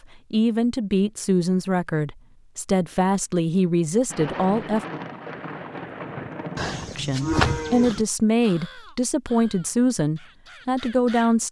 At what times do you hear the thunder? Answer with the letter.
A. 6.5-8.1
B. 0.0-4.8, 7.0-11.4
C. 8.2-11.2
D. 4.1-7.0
D.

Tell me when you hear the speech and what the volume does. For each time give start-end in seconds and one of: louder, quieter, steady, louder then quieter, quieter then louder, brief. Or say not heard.
0.0-4.8 steady
7.0-11.4 steady.